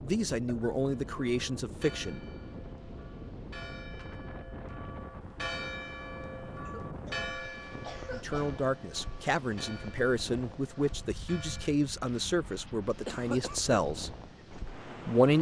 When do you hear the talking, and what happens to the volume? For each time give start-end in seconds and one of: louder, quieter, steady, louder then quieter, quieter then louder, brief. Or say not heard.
0.0-2.2 brief
8.1-15.3 steady.